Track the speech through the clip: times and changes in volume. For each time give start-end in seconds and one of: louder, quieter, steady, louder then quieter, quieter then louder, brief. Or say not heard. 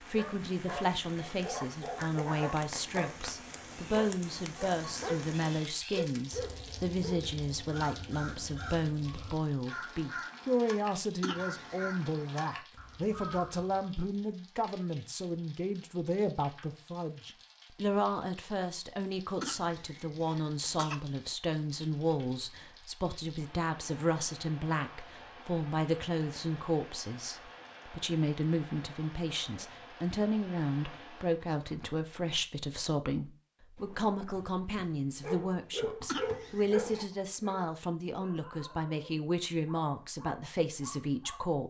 0.1-41.6 steady.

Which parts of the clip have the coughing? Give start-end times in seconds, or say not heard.
11.2-11.9, 19.4-21.0, 36.0-37.1.